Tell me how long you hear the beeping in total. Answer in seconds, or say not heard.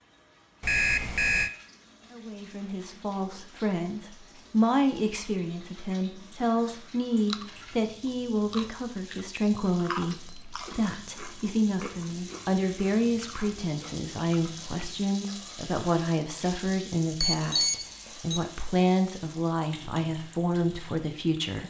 3 s.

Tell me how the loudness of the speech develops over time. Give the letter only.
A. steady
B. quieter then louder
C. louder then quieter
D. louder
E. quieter
A.